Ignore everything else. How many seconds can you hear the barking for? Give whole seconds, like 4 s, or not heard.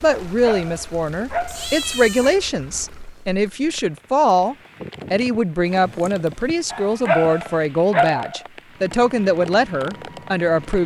4 s.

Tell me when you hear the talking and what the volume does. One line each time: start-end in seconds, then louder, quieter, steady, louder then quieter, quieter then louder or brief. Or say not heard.
0.0-10.8 steady.